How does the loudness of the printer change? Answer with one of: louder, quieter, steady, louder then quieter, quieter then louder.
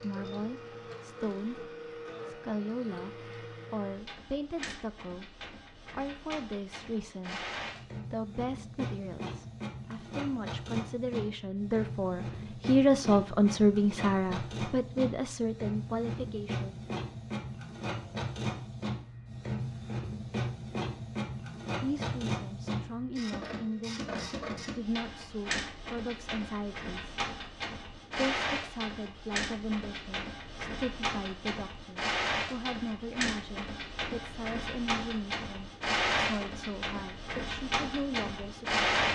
louder.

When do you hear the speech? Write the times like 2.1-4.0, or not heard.
0.0-7.5, 8.1-16.8, 21.8-27.2, 28.1-38.9.